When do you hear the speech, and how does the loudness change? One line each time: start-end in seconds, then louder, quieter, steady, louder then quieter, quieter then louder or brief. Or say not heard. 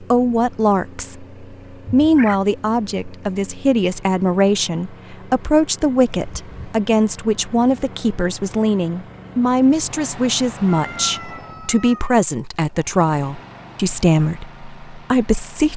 0.0-15.7 steady.